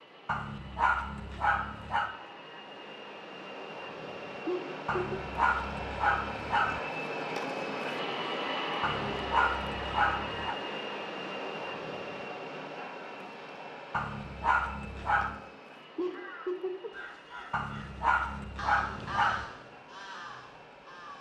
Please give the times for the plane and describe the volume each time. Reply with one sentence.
You can hear the plane from 0.0 to 21.1 s, getting louder then quieter.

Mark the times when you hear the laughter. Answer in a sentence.
The laughter can be heard from 4.5 to 5.2 s and from 15.9 to 17.5 s.